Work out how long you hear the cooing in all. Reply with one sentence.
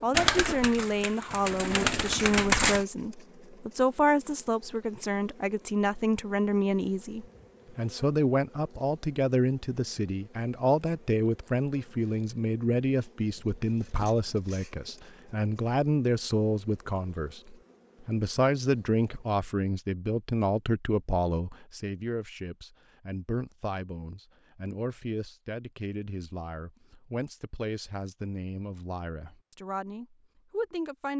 You can hear the cooing for 3 seconds altogether.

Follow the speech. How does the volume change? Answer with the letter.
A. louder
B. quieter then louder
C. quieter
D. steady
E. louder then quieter
C.